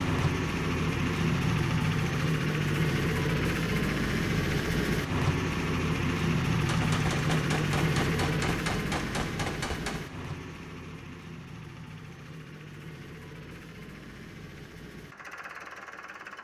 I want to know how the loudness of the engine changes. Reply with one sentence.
The loudness of the engine goes down.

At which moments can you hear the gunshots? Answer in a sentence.
You can hear the gunshots from 6.7 to 10.0 s.